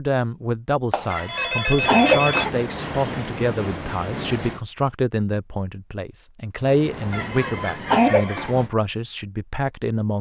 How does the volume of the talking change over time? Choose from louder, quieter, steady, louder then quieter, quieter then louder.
steady.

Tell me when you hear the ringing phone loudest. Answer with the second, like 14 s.
2 s.